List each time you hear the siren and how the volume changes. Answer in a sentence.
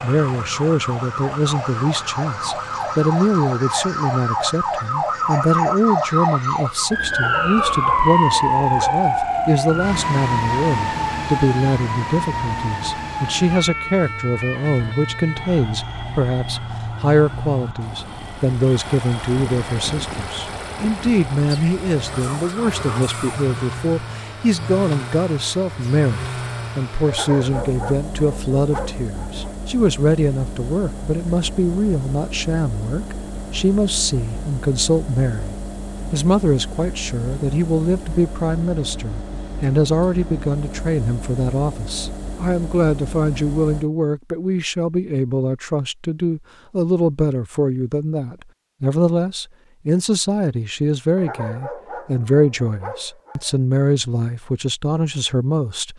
The siren can be heard from 0.0 to 23.6 s, getting louder then quieter.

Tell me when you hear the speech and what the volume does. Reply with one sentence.
The speech can be heard from 0.0 to 55.9 s, at a steady volume.